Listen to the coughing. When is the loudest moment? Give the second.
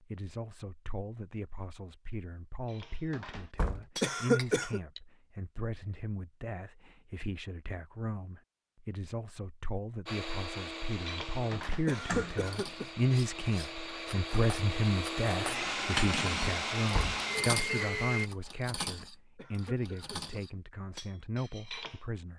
4 s.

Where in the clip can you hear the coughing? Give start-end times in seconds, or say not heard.
4.0-4.8, 11.8-13.1, 19.4-20.4.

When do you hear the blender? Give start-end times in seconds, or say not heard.
10.1-18.3.